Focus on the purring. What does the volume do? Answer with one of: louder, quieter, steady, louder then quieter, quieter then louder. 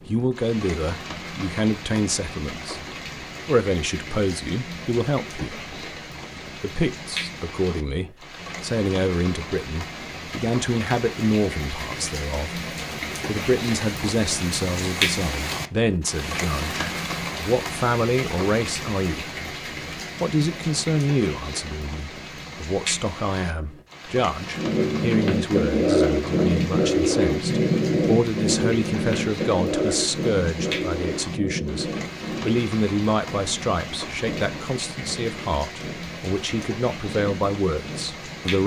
quieter.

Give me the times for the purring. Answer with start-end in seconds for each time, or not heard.
24.5-38.5.